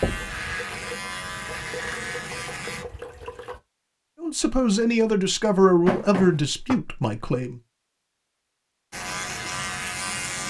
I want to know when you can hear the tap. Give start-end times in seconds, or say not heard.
0.2-3.6.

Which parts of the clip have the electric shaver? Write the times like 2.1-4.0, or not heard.
0.0-2.9, 8.9-10.4.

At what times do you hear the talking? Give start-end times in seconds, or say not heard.
4.2-7.6.